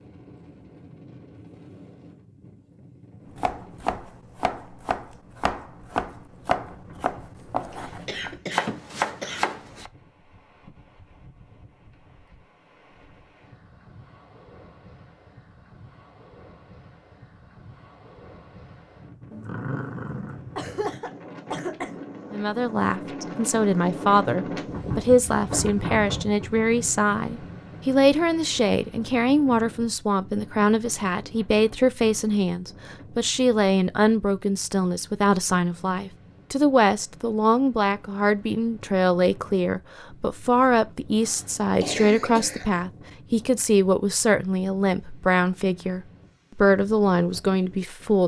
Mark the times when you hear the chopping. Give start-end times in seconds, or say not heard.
3.4-9.9.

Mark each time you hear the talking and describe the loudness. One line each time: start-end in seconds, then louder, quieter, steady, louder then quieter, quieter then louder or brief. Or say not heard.
22.3-48.2 steady.